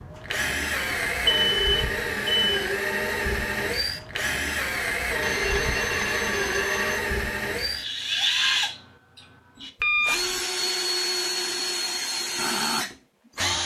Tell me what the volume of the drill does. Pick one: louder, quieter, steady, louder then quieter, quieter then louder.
steady.